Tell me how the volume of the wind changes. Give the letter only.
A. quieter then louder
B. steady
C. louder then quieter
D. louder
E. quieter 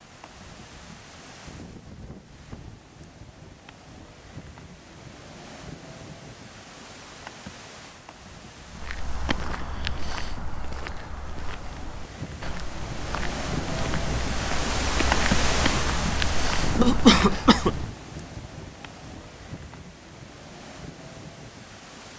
C.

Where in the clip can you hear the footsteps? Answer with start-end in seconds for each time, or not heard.
8.7-17.9.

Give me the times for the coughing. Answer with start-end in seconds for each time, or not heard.
16.8-17.7.